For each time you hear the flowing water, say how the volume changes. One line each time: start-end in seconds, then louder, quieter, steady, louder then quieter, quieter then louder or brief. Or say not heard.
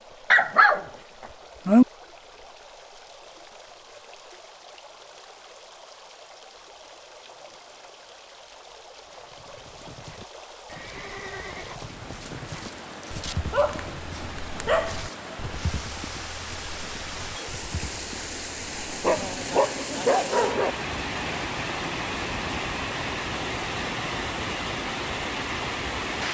0.0-26.2 louder.